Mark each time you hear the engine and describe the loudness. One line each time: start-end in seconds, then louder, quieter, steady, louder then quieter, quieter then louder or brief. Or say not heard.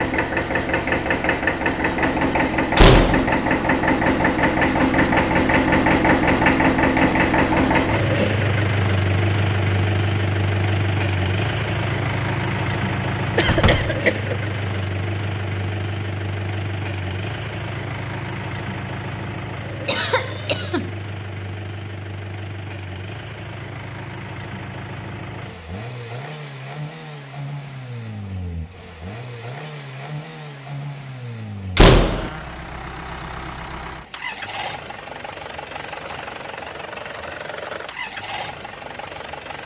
0.0-39.6 quieter.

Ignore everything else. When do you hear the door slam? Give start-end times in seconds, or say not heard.
2.8-3.3, 13.4-13.9, 31.8-32.3.